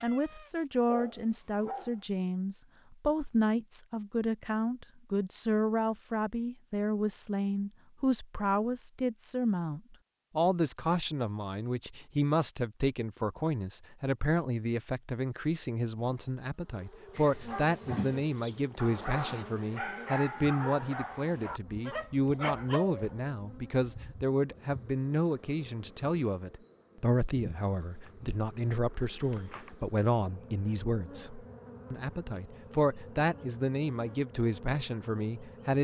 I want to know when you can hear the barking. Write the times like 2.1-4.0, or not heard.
0.0-2.0, 17.1-23.1.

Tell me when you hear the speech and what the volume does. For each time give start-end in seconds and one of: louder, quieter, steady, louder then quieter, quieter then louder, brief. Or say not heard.
0.0-35.7 steady.